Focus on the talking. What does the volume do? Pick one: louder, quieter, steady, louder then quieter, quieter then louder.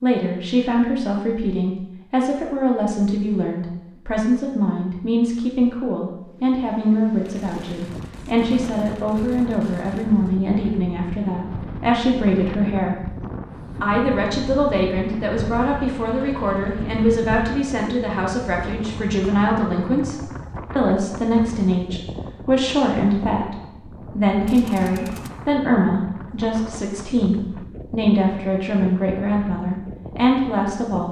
steady.